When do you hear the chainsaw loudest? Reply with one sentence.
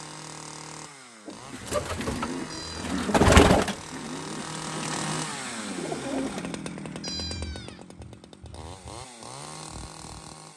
The loudest moment of the chainsaw is at 5 seconds.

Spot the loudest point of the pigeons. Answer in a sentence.
The volume of the pigeons peaks at 3 seconds.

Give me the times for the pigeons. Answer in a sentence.
You can hear the pigeons from 1.2 to 6.6 s.